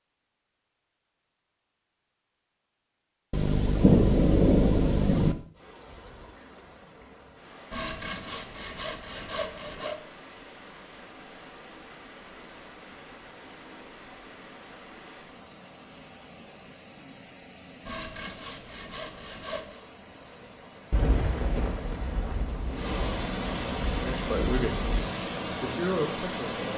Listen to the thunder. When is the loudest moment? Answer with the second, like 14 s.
4 s.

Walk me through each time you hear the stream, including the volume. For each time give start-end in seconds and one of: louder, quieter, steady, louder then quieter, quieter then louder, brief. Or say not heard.
5.5-26.7 louder.